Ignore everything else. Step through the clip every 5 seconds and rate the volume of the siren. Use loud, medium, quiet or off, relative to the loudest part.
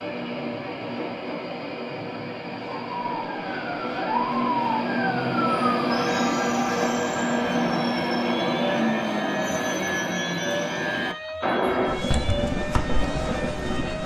loud, loud, medium.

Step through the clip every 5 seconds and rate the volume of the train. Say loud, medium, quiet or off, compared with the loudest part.
medium, loud, loud.